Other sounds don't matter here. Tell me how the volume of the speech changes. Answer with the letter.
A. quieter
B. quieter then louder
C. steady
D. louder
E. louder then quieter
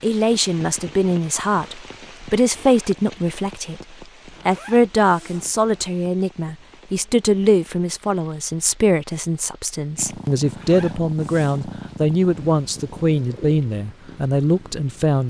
C.